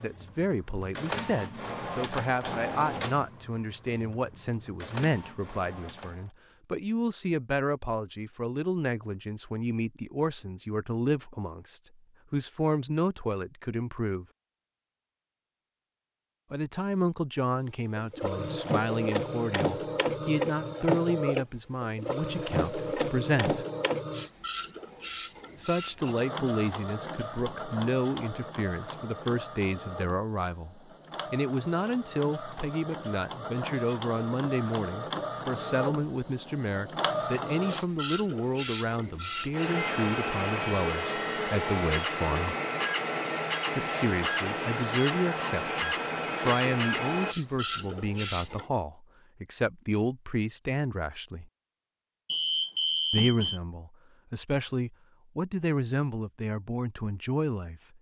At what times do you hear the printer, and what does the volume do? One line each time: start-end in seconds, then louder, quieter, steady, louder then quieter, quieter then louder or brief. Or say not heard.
0.0-6.3 quieter then louder
17.9-48.6 quieter then louder.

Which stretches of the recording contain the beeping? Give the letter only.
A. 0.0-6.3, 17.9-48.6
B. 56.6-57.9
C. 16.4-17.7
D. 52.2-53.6
D.